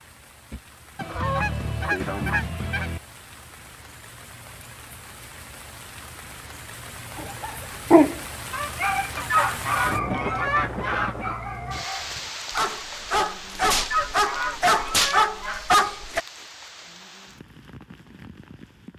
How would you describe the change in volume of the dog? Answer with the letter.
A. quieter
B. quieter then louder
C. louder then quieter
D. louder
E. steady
B.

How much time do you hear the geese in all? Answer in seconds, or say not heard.
6 s.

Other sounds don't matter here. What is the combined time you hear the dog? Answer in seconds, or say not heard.
9 s.